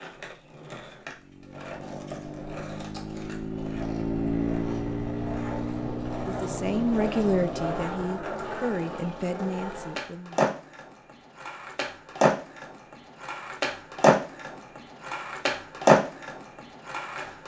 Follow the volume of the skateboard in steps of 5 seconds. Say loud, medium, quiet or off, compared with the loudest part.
quiet, medium, loud, loud.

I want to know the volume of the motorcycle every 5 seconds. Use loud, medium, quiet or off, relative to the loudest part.
loud, loud, off, off.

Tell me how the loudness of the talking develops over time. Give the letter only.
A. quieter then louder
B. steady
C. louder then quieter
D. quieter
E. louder
D.